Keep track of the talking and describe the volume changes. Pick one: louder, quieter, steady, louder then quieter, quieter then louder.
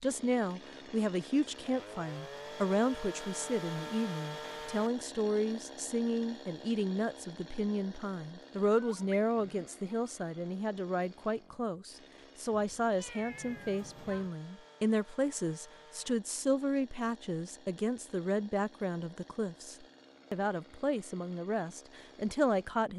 steady.